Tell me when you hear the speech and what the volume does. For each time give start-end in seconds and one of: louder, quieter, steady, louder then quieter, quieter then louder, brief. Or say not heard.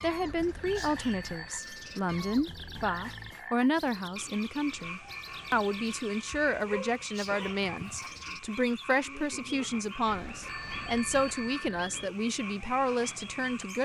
0.0-13.8 steady.